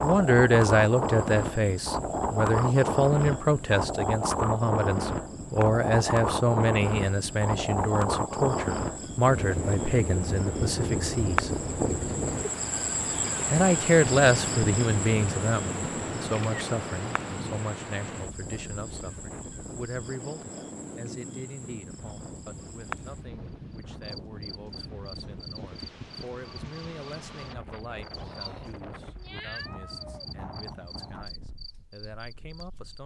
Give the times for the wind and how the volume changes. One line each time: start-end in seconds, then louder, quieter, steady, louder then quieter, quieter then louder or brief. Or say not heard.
0.0-33.0 quieter.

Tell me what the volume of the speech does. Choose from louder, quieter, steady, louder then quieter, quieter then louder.
quieter.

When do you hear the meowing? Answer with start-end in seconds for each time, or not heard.
29.1-30.4.